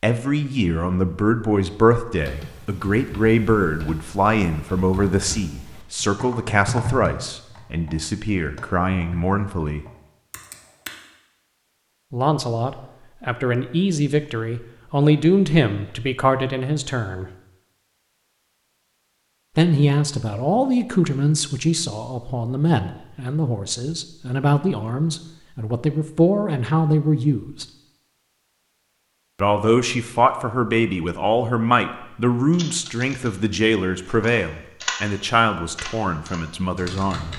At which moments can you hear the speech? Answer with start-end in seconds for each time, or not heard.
0.0-9.8, 12.1-17.3, 19.6-27.6, 29.4-37.3.